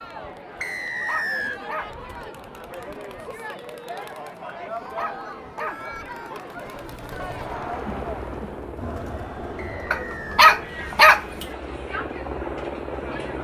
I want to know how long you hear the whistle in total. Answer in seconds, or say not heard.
2 s.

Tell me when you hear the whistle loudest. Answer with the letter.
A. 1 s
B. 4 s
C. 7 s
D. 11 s
A.